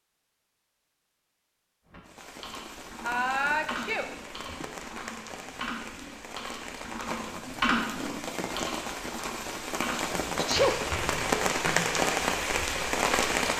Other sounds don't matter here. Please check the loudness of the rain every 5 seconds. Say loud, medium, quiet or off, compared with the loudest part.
quiet, medium, loud.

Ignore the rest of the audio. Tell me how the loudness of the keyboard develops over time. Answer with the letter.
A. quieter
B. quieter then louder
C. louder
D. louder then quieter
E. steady
D.